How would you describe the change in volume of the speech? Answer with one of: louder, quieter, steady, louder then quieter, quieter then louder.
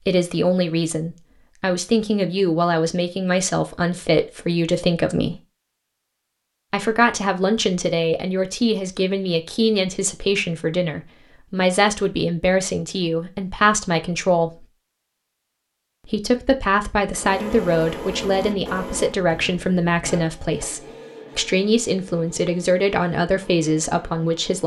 steady.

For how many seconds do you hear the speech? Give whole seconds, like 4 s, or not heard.
22 s.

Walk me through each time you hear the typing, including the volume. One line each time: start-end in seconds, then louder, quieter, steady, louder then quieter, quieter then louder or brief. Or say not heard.
not heard.